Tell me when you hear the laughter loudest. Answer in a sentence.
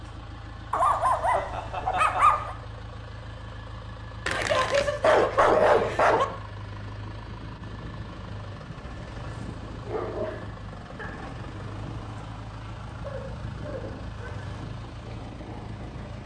The loudest moment of the laughter is at 2 seconds.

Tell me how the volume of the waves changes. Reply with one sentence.
The loudness of the waves stays about the same.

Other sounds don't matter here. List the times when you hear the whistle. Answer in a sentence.
The whistle can't be heard in this clip.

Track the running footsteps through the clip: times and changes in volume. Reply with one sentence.
The running footsteps can't be heard in this clip.